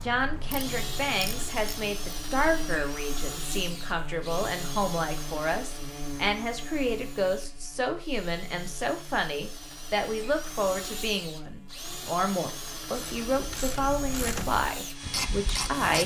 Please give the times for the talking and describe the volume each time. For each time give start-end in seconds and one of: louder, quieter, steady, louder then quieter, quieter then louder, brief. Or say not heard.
0.0-16.0 steady.